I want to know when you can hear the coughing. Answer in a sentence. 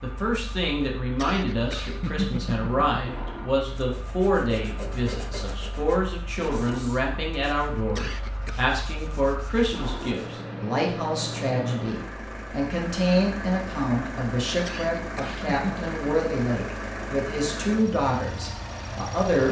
You can hear the coughing from 1.1 to 3.0 s, from 8.0 to 8.7 s and from 14.7 to 15.8 s.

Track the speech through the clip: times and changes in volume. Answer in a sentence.
The speech can be heard from 0.0 to 19.4 s, at a steady volume.